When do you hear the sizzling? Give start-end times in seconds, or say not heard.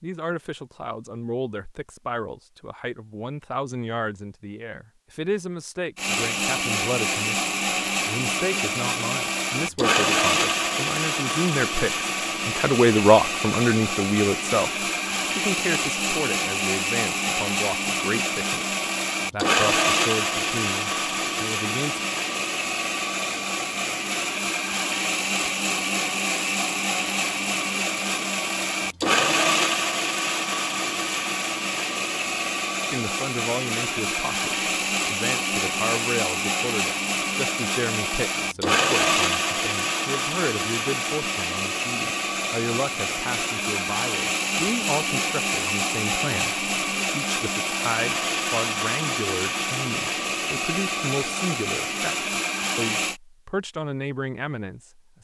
not heard.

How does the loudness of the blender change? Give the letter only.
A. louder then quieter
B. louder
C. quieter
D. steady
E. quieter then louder
D.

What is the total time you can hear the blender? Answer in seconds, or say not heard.
47 s.